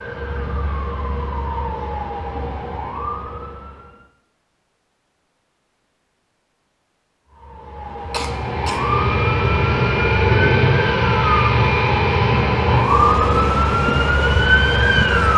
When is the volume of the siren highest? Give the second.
15 s.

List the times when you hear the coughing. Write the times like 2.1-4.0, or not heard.
8.1-8.8.